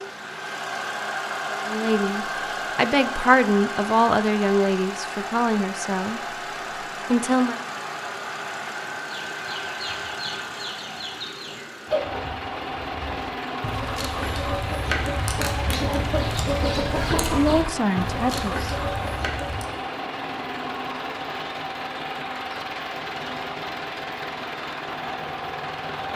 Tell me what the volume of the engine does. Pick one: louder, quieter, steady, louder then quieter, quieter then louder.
steady.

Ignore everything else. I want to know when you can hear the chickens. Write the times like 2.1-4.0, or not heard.
9.0-19.6.